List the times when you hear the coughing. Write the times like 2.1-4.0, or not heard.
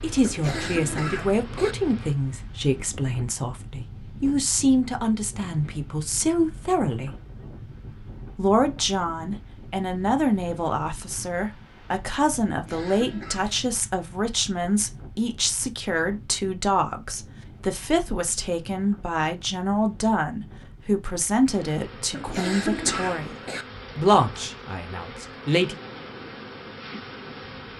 0.2-1.8, 12.4-13.7, 22.1-23.6.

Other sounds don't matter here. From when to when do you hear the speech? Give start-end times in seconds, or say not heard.
0.0-7.2, 8.3-23.4, 23.9-25.8.